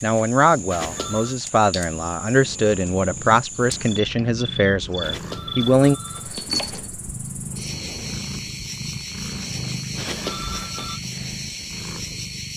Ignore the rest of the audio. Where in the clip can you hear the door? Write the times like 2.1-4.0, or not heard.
not heard.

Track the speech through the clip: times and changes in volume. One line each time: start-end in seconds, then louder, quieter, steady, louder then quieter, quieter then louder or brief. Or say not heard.
0.0-6.0 steady.